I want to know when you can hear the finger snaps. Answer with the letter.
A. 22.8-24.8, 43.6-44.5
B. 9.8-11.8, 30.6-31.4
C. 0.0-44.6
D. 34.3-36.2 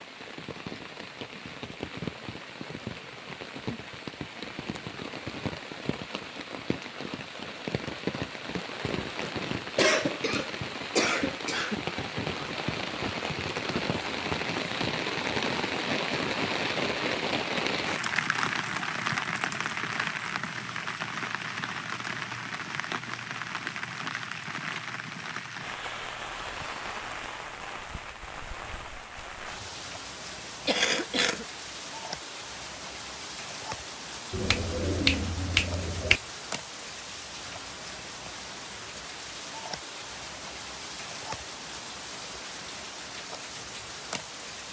D.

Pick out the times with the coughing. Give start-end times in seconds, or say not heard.
9.8-11.8, 30.6-31.4.